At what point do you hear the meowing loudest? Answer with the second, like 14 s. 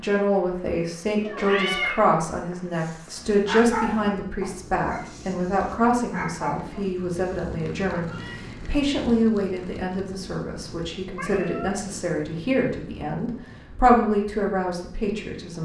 2 s.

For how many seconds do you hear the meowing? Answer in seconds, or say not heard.
2 s.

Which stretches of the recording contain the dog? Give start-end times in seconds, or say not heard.
2.8-8.1.